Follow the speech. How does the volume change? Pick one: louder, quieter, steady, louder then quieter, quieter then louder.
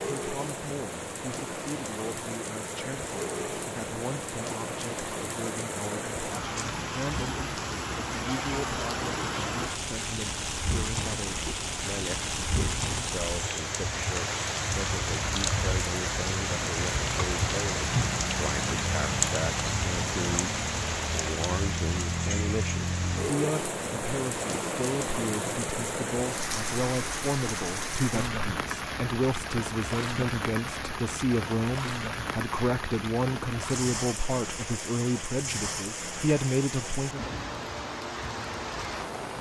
louder.